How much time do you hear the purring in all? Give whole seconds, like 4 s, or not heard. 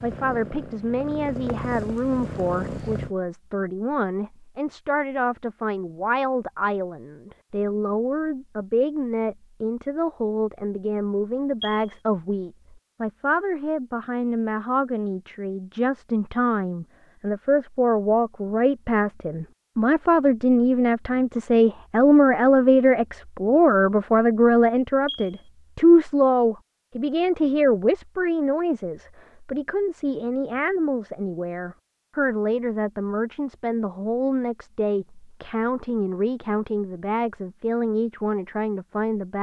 3 s.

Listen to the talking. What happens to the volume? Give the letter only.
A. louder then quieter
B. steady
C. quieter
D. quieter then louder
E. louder
A.